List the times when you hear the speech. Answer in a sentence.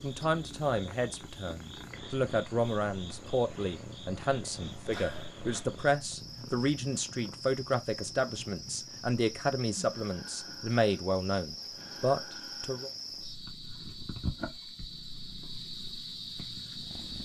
You can hear the speech from 0.0 to 12.9 s.